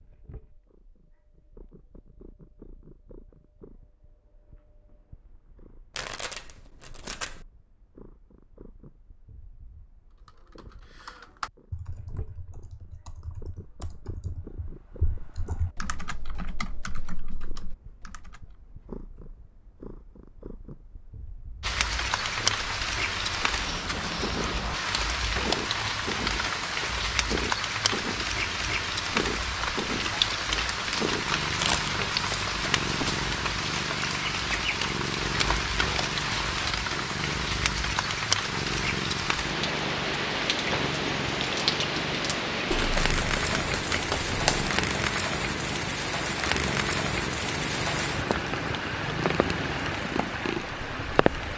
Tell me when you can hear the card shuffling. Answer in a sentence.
The card shuffling can be heard from 5.9 to 7.5 s, from 31.6 to 32.5 s and from 42.7 to 44.7 s.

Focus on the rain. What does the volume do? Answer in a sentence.
The loudness of the rain stays about the same.